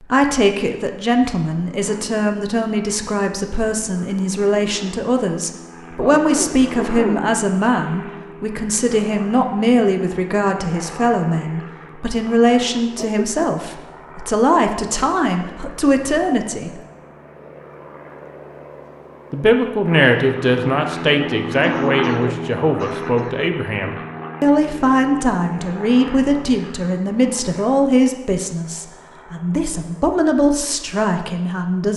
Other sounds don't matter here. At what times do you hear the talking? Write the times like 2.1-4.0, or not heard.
0.0-16.8, 19.3-31.9.